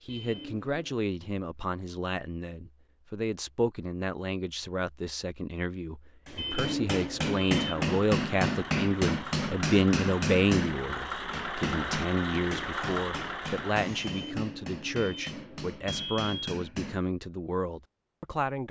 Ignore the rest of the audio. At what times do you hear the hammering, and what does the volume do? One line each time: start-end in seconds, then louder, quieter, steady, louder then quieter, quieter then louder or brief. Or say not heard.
6.2-17.1 quieter.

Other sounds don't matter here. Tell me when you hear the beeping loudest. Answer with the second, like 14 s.
7 s.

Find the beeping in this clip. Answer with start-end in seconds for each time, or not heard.
0.1-1.0, 6.3-7.8, 14.0-16.6.